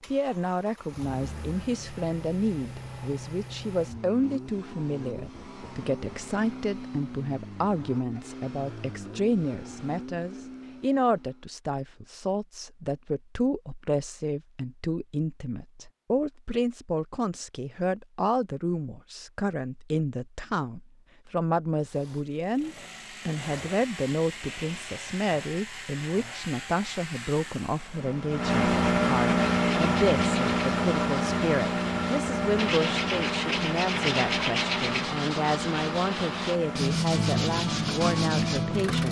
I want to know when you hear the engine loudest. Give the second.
29 s.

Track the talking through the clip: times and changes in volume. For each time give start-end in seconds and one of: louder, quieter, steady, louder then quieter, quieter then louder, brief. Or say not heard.
0.1-39.0 steady.